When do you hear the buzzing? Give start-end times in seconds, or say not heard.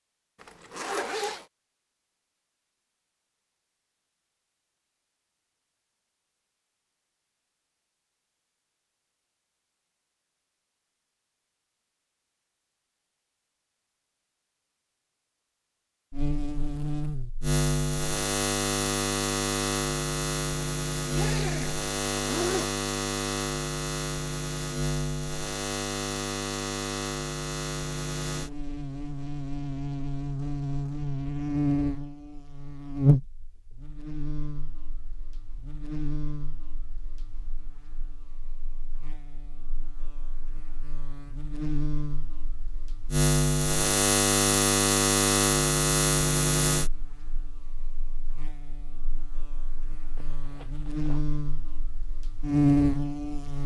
16.1-53.6.